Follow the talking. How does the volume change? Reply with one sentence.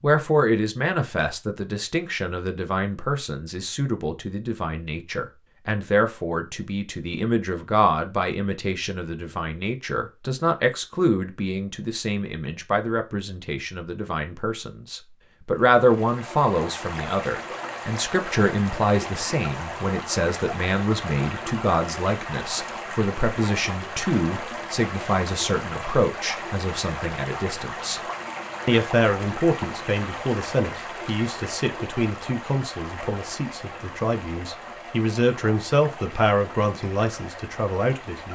The loudness of the talking stays about the same.